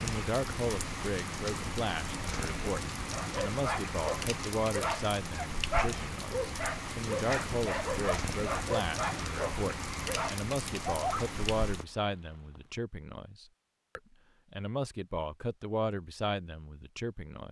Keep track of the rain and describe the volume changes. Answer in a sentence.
The loudness of the rain stays about the same.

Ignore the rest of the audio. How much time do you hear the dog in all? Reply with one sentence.
You can hear the dog for 8 seconds altogether.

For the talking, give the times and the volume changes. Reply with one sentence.
You can hear the talking from 0.0 to 17.4 s, at a steady volume.